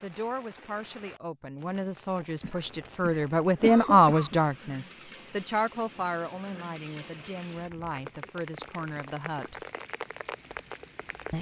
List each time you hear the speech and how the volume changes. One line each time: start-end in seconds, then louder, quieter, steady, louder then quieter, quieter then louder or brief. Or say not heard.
0.0-9.7 louder then quieter.